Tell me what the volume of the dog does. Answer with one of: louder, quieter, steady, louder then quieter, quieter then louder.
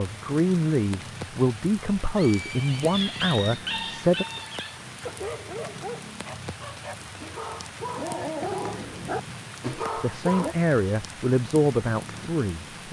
quieter then louder.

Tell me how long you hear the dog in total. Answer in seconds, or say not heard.
8 s.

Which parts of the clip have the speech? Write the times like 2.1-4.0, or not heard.
0.0-4.2, 9.7-12.8.